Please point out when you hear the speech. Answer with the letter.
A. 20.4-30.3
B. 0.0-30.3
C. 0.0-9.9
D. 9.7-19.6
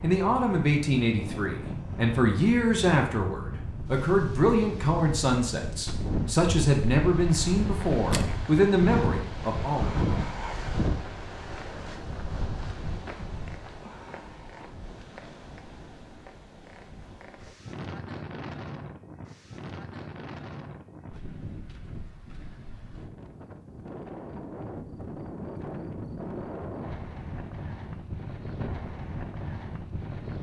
C.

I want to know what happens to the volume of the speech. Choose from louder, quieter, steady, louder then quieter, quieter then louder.
steady.